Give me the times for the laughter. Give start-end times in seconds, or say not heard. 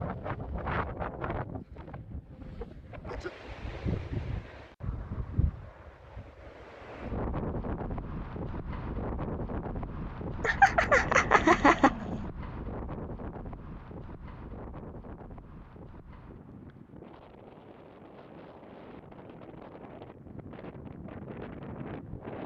10.4-12.2.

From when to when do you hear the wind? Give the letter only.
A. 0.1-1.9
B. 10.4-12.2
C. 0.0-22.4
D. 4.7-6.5
C.